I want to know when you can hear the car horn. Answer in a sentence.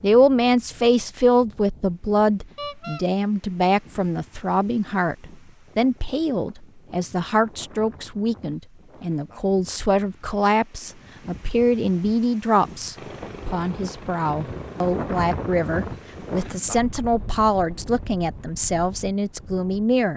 The car horn can be heard from 2.5 to 3.0 s.